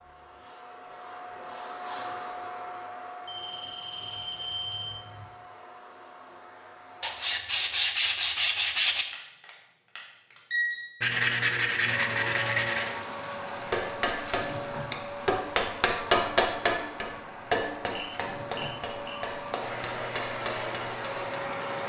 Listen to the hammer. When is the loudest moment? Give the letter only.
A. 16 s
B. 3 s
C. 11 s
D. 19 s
A.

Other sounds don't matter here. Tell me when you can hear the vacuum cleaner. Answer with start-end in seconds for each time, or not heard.
0.0-7.3, 11.8-21.8.